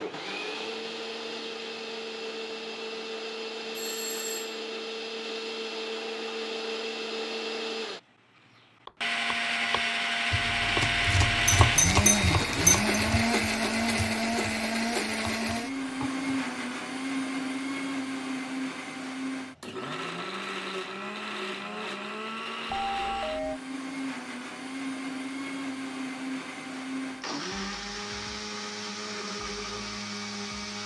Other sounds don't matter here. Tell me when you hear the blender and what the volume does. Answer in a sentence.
You can hear the blender from 0.0 to 30.8 s, getting louder then quieter.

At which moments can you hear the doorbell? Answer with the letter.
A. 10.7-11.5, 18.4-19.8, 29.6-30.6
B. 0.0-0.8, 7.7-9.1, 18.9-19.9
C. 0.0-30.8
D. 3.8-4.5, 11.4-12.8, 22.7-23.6
D.